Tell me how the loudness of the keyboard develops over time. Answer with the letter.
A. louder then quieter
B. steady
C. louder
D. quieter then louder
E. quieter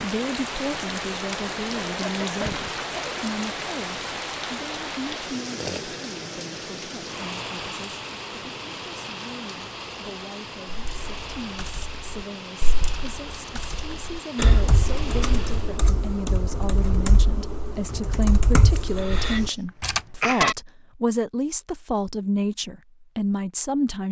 C.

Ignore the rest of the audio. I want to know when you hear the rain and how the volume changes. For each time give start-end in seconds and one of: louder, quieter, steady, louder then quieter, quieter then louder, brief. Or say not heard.
0.0-15.9 quieter.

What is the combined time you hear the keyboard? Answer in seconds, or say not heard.
9 s.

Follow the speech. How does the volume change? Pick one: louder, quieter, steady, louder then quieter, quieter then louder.
quieter then louder.